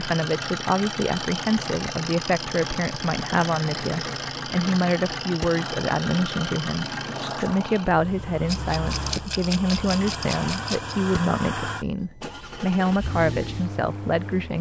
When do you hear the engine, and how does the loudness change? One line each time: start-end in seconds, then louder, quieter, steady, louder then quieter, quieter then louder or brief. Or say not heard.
0.0-14.5 steady.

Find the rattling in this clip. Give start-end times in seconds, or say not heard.
8.4-10.9.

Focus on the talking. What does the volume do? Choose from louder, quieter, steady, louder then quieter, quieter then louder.
steady.